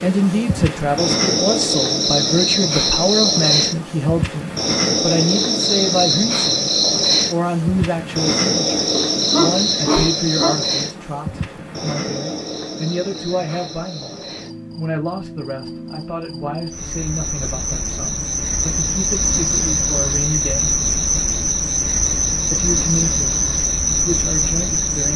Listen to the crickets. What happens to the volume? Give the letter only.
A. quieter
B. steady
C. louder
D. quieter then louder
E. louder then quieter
D.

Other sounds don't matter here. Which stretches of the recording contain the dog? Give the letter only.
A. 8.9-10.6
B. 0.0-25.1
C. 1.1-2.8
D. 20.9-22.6
A.